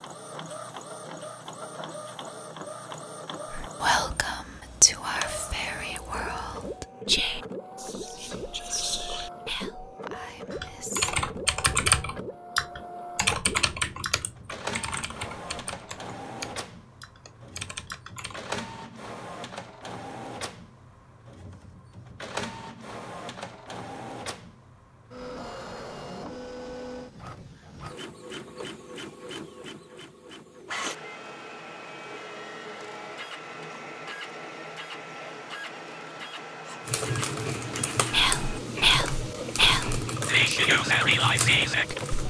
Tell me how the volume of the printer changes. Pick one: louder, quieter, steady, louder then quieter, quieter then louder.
steady.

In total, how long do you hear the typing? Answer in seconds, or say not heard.
13 s.